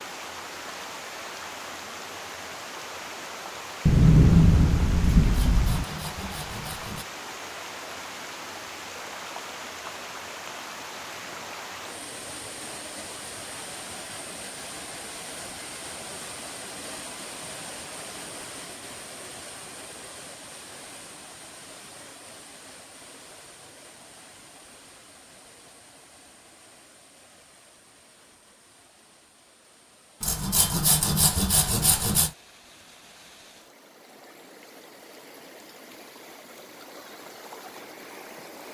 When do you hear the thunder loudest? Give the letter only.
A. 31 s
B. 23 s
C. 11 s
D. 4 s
D.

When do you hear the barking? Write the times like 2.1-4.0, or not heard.
not heard.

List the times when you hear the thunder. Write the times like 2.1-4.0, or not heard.
3.9-5.8.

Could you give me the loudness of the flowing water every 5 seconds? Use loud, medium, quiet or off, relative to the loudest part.
loud, loud, loud, loud, medium, quiet, quiet, medium.